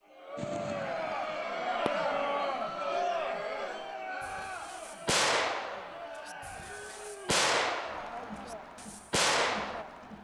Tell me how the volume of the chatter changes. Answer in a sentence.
The volume of the chatter goes down.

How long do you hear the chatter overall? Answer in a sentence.
You can hear the chatter for 10 seconds altogether.